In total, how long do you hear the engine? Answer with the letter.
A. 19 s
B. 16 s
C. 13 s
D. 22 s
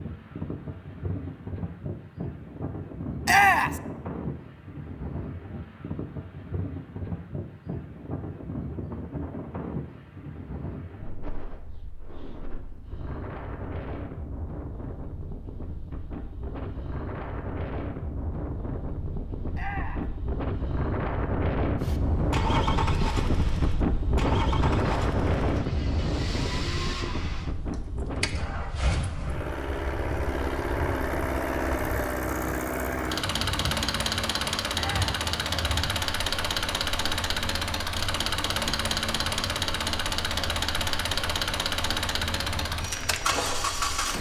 D.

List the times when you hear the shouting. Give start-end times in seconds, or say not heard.
3.2-3.8, 19.5-20.1, 34.7-35.1.